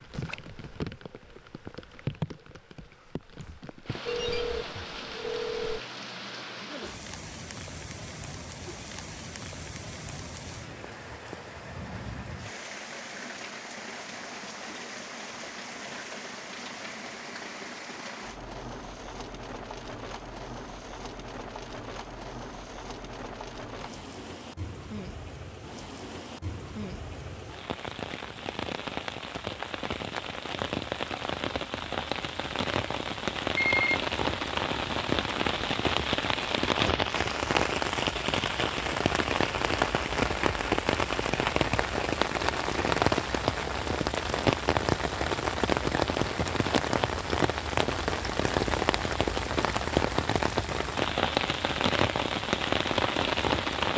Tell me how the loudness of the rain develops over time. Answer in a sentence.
The loudness of the rain goes up.